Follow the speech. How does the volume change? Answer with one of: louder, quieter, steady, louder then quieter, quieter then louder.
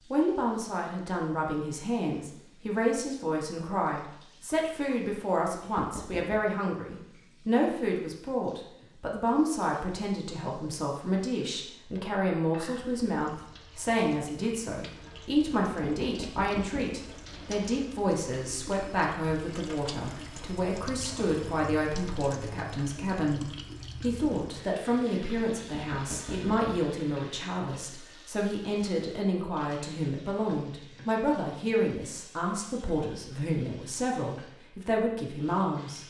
steady.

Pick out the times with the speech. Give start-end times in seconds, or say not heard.
0.1-36.0.